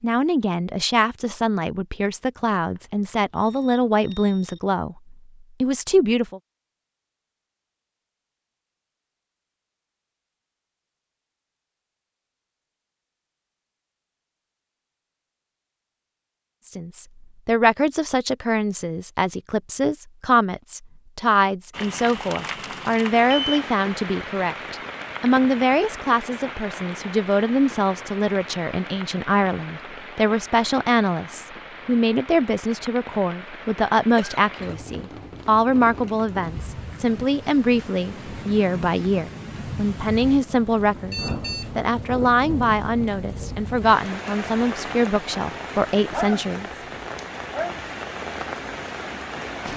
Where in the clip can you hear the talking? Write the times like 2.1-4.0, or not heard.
0.0-6.4, 16.6-46.7.